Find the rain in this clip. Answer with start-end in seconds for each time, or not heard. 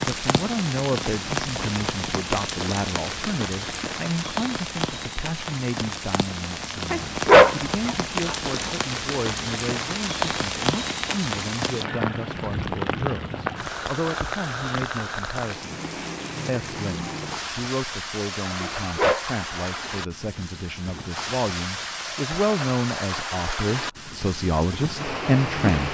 0.0-25.9.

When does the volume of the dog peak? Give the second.
7 s.